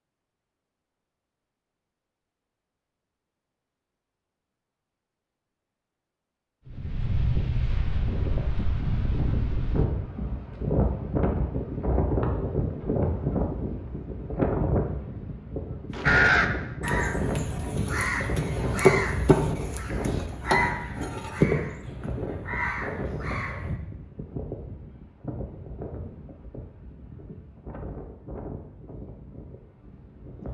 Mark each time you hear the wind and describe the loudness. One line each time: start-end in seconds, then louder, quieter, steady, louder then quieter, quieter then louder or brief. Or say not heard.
6.7-30.4 quieter.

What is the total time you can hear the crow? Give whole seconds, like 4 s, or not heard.
8 s.